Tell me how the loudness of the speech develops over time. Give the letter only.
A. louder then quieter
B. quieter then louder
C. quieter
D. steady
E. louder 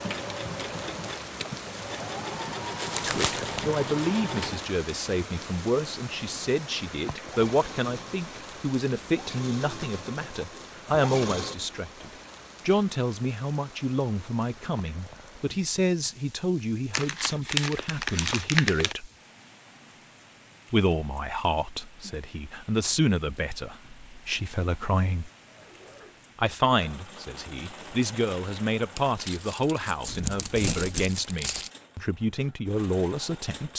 D.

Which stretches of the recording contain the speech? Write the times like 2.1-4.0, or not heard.
3.0-19.1, 20.7-25.3, 26.4-33.7.